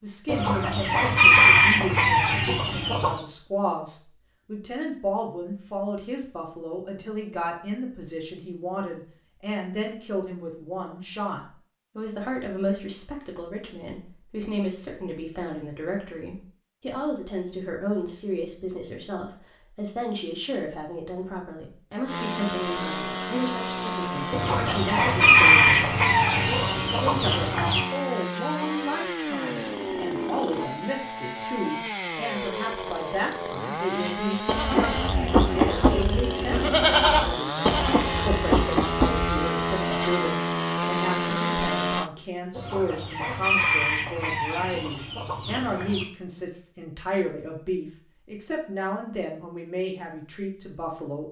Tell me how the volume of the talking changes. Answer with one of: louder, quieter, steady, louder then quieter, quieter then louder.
steady.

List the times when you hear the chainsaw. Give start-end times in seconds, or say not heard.
22.1-42.1.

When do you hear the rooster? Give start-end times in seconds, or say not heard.
0.2-3.2, 24.3-27.8, 42.5-46.0.